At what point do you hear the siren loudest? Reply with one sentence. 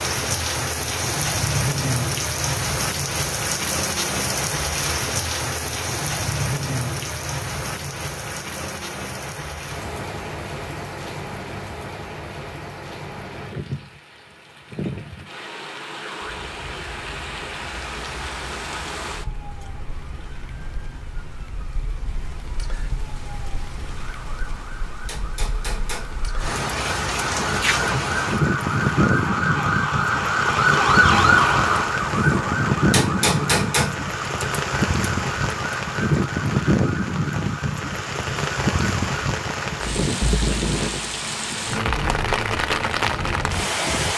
The loudest moment of the siren is at 31 seconds.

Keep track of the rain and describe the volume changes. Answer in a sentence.
The loudness of the rain goes down, then up.